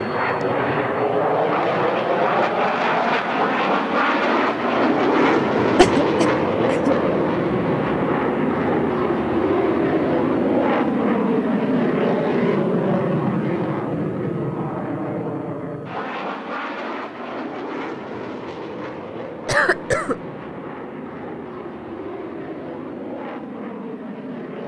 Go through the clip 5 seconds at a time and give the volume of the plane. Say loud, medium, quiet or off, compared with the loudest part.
loud, loud, loud, medium, quiet.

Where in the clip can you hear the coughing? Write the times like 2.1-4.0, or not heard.
5.8-7.0, 19.4-20.1.